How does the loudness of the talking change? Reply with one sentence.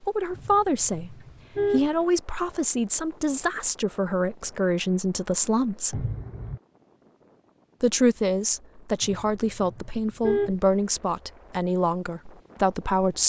The volume of the talking stays about the same.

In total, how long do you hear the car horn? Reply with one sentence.
The car horn can be heard for 4 seconds in total.